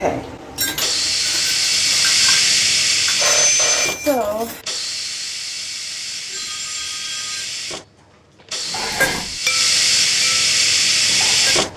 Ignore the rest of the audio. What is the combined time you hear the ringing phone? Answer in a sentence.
The ringing phone can be heard for 2 seconds in total.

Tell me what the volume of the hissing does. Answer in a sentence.
The volume of the hissing goes down, then up.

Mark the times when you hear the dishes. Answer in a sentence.
You can hear the dishes from 0.0 to 4.6 s and from 8.7 to 11.7 s.